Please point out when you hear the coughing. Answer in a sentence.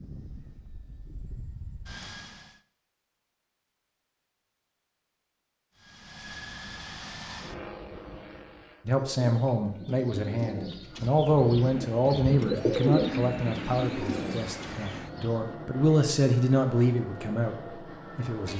The coughing can't be heard in this clip.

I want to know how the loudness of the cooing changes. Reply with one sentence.
The volume of the cooing goes up, then down.